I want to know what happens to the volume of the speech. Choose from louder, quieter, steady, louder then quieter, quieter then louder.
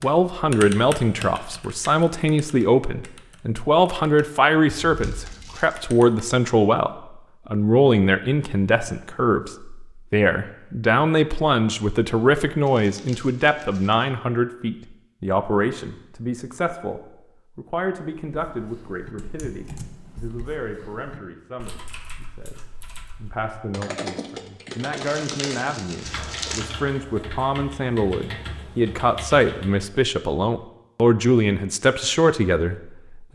quieter then louder.